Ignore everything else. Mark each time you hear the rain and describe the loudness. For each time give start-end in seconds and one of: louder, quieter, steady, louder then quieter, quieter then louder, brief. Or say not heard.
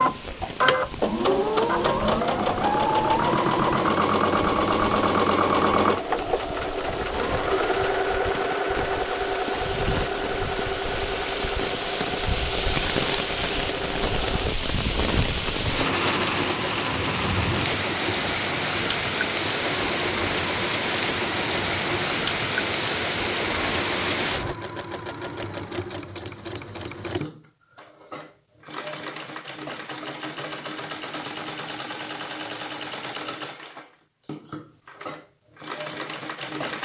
0.0-24.6 louder.